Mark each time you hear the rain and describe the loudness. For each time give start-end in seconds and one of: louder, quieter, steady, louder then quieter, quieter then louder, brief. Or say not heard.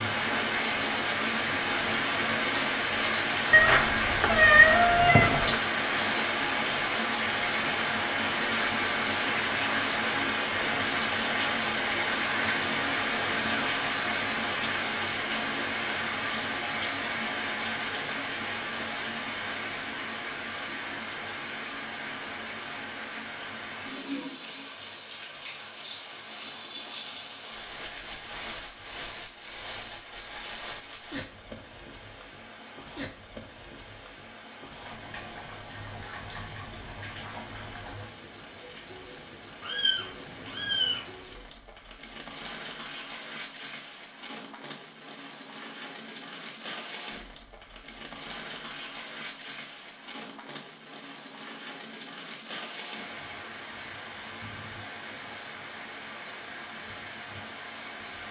0.0-58.2 quieter.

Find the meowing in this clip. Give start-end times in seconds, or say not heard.
3.5-5.6, 39.6-41.0.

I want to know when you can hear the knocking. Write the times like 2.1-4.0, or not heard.
not heard.